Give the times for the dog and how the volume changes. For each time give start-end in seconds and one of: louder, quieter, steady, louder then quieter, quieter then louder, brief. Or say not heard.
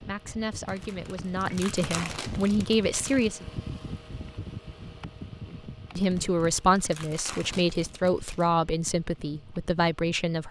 not heard.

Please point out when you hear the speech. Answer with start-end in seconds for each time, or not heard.
0.0-3.5, 5.5-10.4.